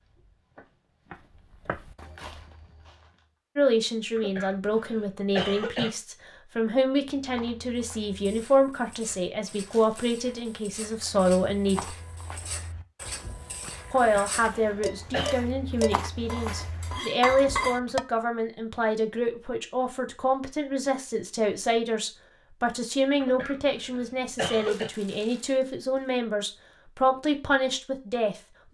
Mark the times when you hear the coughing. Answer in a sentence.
The coughing can be heard from 4.2 to 5.9 s, from 13.9 to 15.4 s and from 23.2 to 24.9 s.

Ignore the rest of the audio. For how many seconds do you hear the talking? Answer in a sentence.
You can hear the talking for 23 seconds altogether.